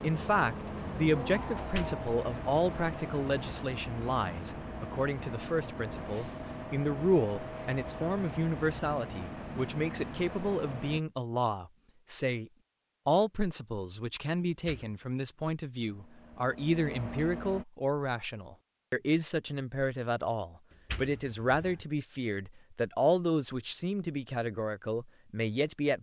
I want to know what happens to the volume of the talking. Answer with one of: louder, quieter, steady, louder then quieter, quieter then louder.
steady.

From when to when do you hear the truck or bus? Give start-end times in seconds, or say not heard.
0.0-11.0, 15.8-17.6.